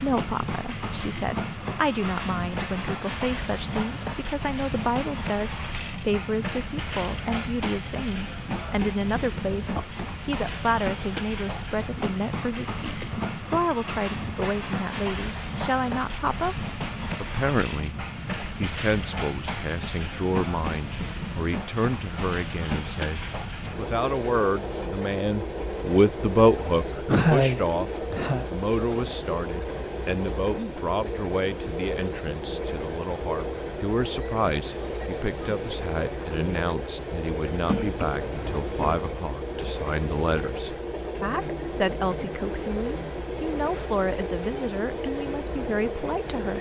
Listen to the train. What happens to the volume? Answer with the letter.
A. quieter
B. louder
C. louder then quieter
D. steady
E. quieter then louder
D.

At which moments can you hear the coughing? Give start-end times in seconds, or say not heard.
9.8-10.3, 27.1-28.4, 37.5-39.0.